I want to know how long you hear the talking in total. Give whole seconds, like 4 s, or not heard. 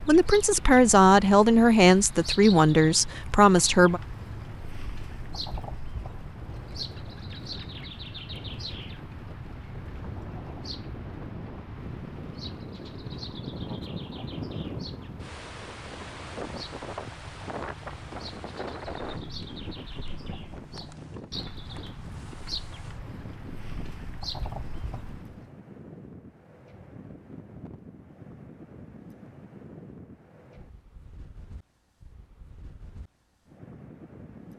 4 s.